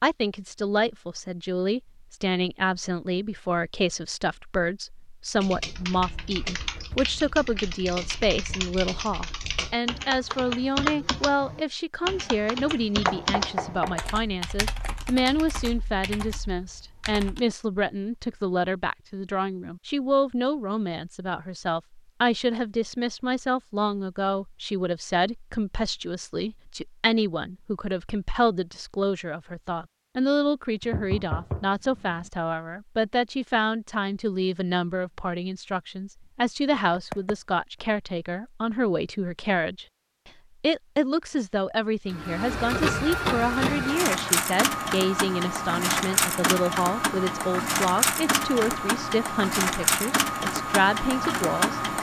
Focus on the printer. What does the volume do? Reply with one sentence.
The loudness of the printer stays about the same.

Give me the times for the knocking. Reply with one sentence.
The knocking can be heard from 13.1 to 14.1 s, from 30.8 to 32.3 s and from 36.7 to 37.4 s.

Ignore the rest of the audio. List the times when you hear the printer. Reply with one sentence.
The printer can be heard from 42.1 to 51.9 s.